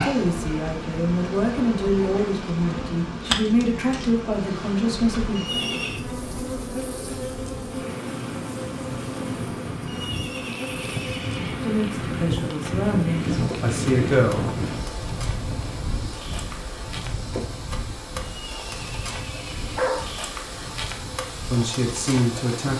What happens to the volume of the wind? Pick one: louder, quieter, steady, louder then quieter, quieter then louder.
louder then quieter.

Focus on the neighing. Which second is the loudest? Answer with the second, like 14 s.
6 s.